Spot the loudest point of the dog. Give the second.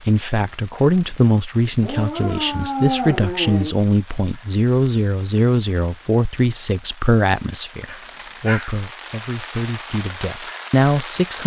3 s.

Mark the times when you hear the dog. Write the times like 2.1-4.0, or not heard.
1.8-3.8, 7.8-8.8.